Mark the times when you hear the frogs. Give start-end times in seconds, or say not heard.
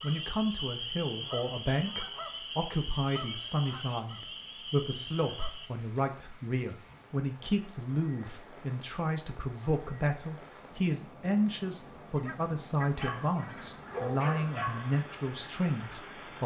not heard.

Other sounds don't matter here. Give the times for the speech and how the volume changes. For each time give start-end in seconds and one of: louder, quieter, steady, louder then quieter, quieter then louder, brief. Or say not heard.
0.0-16.4 steady.